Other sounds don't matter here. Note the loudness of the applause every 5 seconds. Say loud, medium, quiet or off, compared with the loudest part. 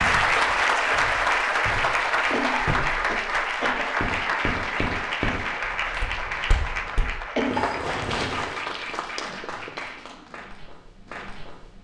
loud, medium, quiet.